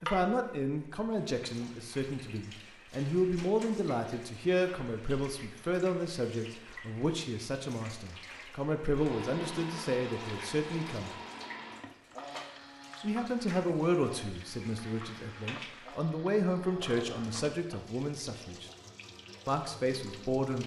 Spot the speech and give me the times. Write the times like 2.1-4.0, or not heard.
0.0-11.2, 13.0-18.7, 19.4-20.6.